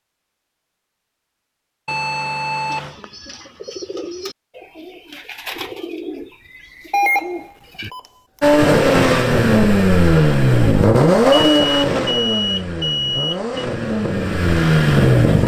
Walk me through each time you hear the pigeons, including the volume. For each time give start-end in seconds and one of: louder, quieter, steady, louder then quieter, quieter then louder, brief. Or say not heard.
2.7-7.9 steady.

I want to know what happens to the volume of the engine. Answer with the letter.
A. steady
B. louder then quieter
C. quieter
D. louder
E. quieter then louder
E.